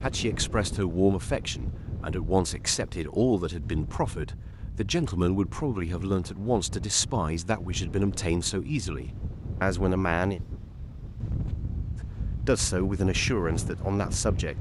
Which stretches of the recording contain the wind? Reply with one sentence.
You can hear the wind from 0.0 to 14.5 s.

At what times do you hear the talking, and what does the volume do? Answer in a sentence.
You can hear the talking from 0.0 to 10.4 s, at a steady volume; and briefly from 12.4 to 14.5 s.